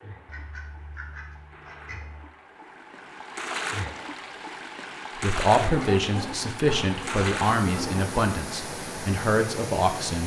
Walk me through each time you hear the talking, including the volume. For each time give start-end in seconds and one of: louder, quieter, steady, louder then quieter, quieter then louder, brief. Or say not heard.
5.2-10.2 steady.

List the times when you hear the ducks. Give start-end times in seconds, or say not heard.
0.2-2.3, 5.6-8.1.